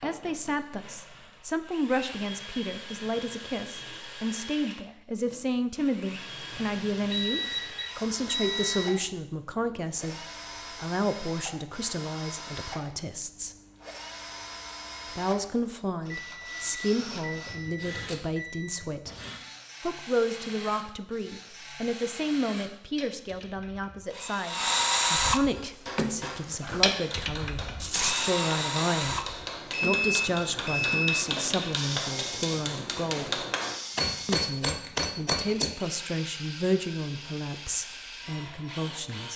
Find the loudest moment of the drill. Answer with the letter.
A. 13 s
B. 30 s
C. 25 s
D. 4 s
C.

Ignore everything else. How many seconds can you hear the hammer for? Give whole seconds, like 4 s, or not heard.
10 s.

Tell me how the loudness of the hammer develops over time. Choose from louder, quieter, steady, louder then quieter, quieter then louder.
louder.